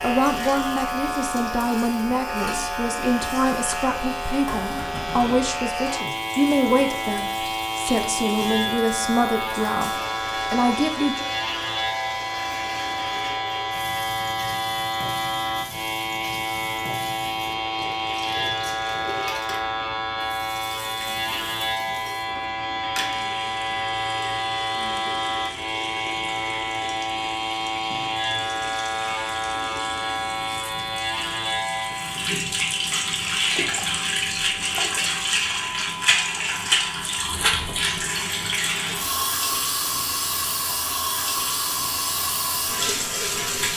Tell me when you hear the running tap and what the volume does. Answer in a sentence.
The running tap can be heard from 0.0 to 43.7 s, getting louder.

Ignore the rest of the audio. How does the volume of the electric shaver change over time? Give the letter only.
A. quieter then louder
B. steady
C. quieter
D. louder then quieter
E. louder
C.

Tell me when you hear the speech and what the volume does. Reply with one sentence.
You can hear the speech from 0.0 to 11.2 s, at a steady volume.